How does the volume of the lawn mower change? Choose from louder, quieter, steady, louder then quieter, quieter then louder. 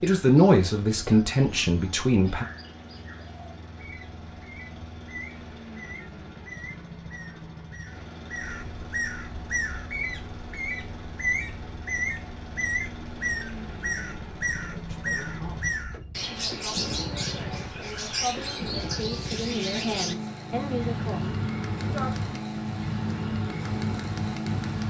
louder.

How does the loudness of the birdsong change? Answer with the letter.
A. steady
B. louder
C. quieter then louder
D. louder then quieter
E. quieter
B.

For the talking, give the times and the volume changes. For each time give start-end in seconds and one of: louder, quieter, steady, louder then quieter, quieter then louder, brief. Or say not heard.
0.0-2.5 brief
14.6-22.1 louder.